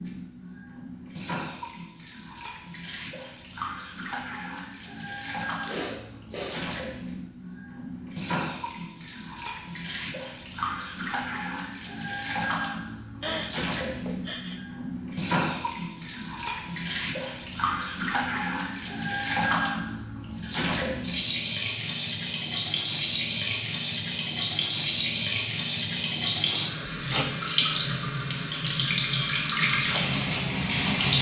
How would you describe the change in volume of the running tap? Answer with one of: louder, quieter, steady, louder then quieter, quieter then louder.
louder.